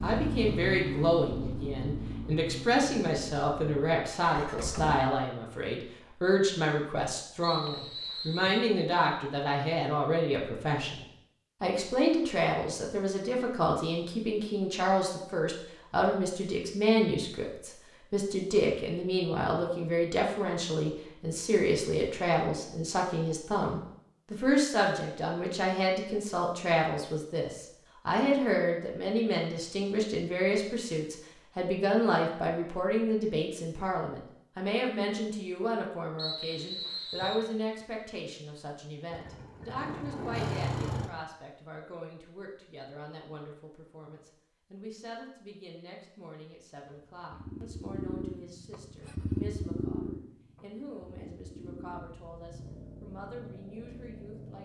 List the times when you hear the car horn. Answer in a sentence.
You can't hear the car horn here.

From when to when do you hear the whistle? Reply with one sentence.
You can hear the whistle from 7.4 to 8.7 s and from 36.1 to 37.5 s.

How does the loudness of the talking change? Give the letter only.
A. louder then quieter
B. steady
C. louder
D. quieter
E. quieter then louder
D.